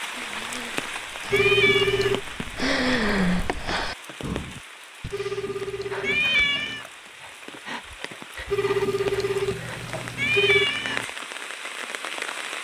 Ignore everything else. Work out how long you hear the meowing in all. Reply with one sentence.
The meowing can be heard for 3 seconds in total.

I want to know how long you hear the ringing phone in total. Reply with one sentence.
You can hear the ringing phone for 5 seconds altogether.